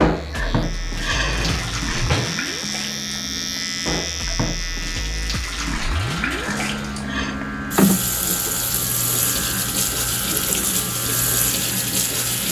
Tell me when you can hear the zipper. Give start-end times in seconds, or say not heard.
not heard.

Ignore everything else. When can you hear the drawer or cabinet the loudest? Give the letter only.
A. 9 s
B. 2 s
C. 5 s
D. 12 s
B.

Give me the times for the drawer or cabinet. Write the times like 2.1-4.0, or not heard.
0.9-2.5.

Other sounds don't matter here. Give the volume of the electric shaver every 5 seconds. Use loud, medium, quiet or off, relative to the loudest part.
loud, medium, medium.